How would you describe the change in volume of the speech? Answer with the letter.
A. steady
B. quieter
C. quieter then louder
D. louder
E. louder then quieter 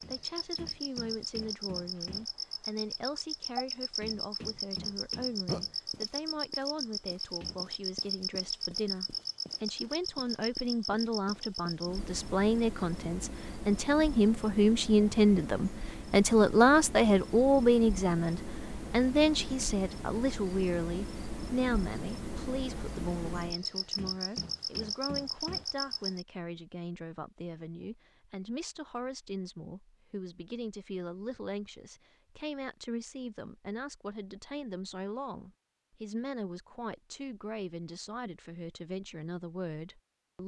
E.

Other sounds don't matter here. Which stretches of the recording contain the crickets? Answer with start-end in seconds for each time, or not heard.
0.0-26.2.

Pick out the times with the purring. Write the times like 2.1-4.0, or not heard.
not heard.